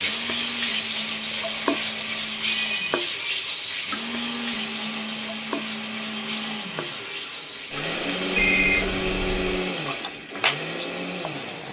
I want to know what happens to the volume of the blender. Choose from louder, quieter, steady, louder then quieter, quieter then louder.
louder.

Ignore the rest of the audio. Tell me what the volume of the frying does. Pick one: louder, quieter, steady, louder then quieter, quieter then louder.
quieter.